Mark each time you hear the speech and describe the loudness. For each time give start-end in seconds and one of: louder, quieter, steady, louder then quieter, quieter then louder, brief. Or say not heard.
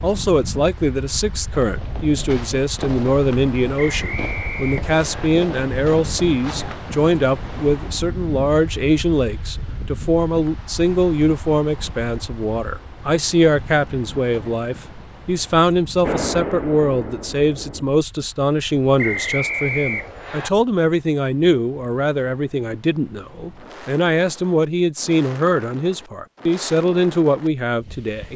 0.0-28.3 steady.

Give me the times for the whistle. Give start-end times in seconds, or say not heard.
3.8-5.3, 18.9-20.5.